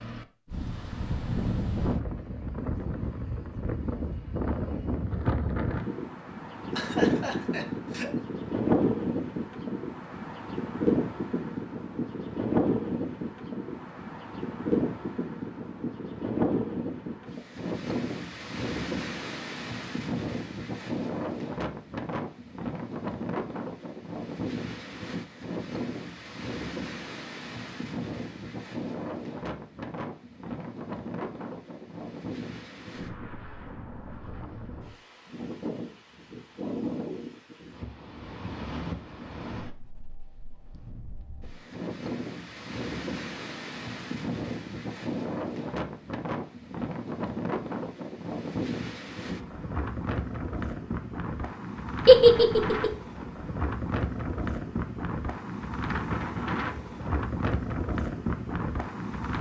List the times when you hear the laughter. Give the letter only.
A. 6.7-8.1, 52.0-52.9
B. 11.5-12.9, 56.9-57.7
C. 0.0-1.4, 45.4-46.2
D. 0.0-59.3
A.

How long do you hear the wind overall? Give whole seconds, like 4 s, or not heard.
59 s.